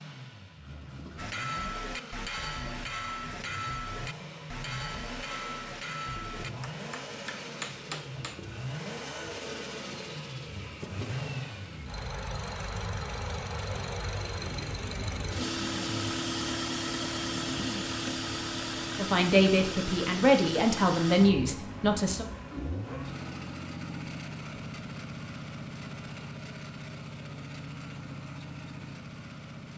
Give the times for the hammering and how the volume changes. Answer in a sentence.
You can hear the hammering from 1.1 to 8.4 s, at a steady volume.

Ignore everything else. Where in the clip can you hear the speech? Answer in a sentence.
You can hear the speech from 18.9 to 22.2 s.